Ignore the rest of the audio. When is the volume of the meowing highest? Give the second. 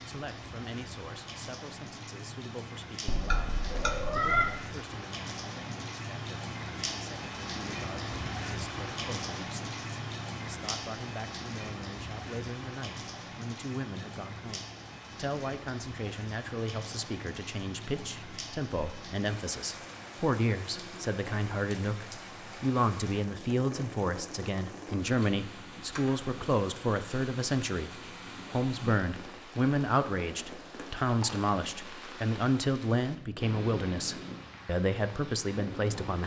4 s.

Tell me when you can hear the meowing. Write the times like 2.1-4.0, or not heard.
3.0-4.5.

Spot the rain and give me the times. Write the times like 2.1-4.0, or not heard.
0.0-36.2.